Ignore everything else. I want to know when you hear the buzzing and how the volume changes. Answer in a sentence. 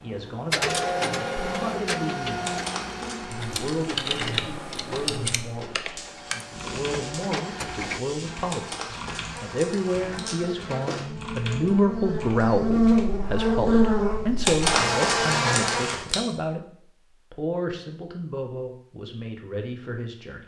You can hear the buzzing from 0.0 to 16.1 s, getting louder.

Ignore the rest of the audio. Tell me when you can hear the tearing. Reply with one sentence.
The tearing can be heard from 2.5 to 4.0 s, from 8.5 to 10.4 s and from 14.4 to 16.2 s.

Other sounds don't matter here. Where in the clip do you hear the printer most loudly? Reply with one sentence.
The volume of the printer peaks at 1 second.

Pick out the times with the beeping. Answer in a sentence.
The beeping can't be heard in this clip.